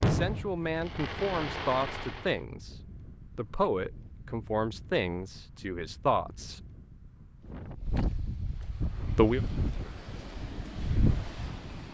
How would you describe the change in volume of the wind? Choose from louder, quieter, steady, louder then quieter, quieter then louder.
louder.